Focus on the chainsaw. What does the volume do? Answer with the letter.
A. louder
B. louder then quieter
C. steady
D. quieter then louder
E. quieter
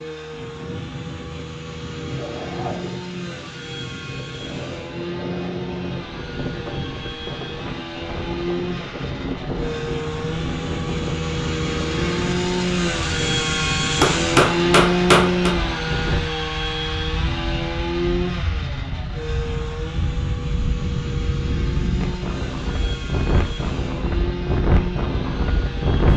B.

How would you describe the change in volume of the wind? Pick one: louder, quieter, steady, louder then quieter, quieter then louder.
louder.